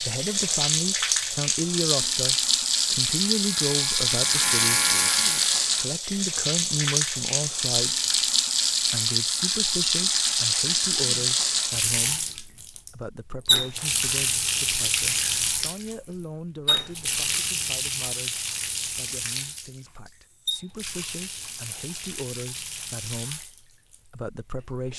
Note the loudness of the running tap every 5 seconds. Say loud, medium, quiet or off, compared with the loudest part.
loud, loud, loud, medium, quiet.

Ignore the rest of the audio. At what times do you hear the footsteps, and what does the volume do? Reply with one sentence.
The footsteps can't be heard in this clip.